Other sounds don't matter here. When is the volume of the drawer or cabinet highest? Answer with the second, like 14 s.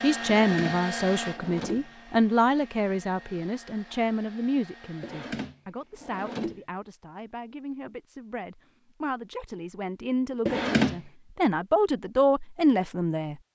11 s.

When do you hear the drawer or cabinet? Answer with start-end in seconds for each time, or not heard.
0.2-1.9, 5.0-6.6, 10.4-11.0.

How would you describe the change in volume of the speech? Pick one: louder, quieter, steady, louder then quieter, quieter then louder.
quieter then louder.